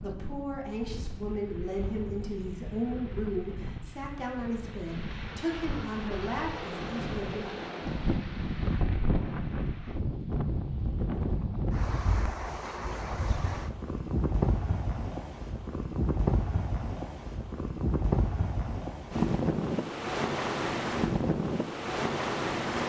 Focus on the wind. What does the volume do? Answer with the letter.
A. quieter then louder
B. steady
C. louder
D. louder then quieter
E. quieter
C.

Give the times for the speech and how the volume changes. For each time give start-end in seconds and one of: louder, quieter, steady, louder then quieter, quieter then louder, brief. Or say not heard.
0.0-7.5 steady.